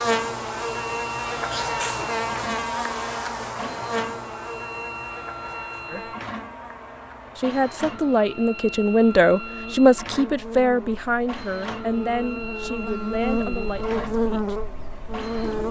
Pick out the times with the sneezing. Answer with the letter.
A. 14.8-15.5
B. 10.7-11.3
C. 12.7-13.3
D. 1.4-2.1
D.